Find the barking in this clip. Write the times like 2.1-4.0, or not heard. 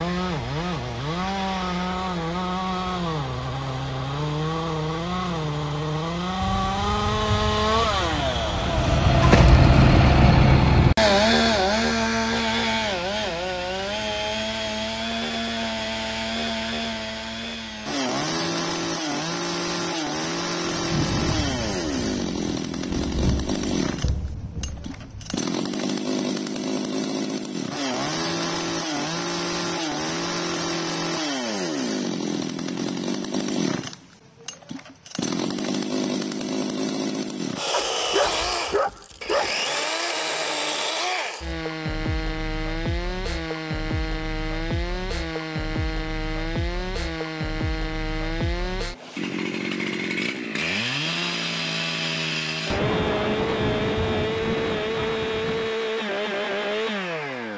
37.7-39.5.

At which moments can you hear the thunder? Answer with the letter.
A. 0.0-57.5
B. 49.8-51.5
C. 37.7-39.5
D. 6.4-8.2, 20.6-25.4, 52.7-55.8
D.